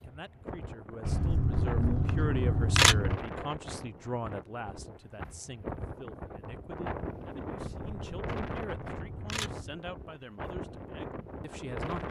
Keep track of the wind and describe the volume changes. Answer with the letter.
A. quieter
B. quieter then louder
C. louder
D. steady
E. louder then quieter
D.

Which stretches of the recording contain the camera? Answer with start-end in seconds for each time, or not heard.
1.1-3.2, 7.5-9.8.